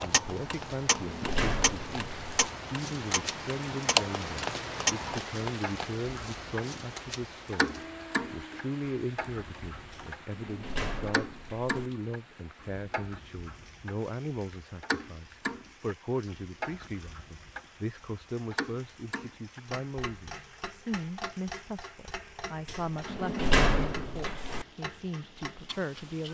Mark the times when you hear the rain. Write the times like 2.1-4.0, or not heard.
0.0-26.2.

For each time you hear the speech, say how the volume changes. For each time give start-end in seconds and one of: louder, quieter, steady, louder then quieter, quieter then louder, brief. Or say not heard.
0.0-26.2 steady.